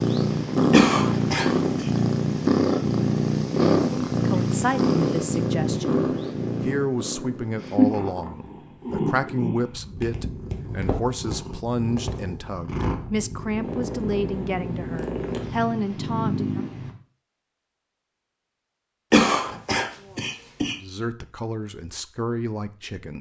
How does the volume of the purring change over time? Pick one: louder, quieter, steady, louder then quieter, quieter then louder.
quieter.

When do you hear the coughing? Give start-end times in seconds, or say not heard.
0.7-1.9, 19.1-20.8.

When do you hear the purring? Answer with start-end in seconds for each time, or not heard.
0.0-16.9.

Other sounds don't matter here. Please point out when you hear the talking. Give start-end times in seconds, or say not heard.
4.2-16.6, 19.9-23.1.